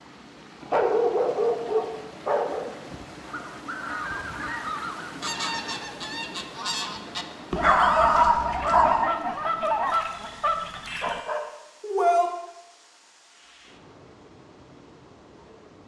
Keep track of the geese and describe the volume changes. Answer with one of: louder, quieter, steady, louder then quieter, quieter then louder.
louder.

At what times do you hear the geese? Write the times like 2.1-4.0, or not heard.
3.2-11.2.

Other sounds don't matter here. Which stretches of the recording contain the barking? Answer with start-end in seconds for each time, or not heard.
0.6-2.6, 7.5-9.1, 10.8-12.3.